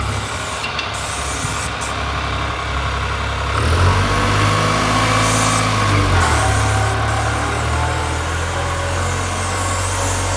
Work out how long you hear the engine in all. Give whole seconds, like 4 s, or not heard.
10 s.